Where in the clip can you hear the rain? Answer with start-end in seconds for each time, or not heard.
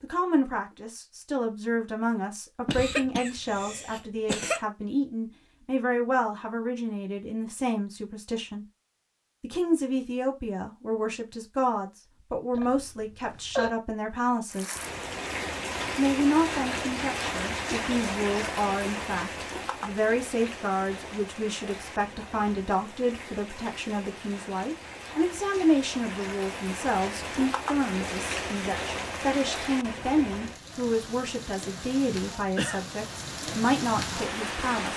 14.5-34.9.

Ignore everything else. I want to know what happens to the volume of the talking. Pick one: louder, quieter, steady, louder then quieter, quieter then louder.
steady.